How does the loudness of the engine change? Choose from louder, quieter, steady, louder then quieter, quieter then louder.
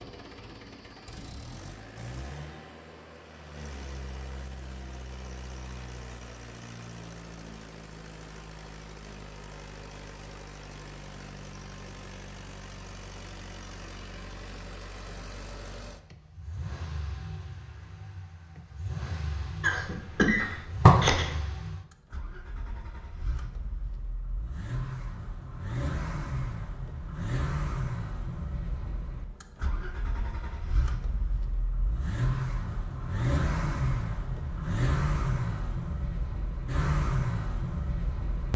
louder.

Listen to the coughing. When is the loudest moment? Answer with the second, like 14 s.
21 s.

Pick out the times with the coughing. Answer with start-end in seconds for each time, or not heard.
19.6-21.3.